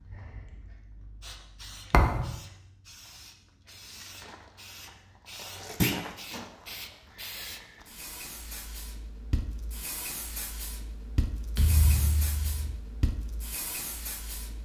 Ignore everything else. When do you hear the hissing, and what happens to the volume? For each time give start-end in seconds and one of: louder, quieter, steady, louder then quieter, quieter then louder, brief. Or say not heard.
0.0-14.5 louder.